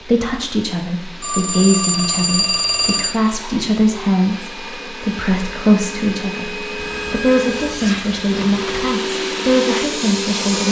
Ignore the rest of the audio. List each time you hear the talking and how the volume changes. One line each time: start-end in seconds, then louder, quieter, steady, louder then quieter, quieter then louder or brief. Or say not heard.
0.0-10.6 steady.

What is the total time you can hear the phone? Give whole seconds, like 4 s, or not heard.
4 s.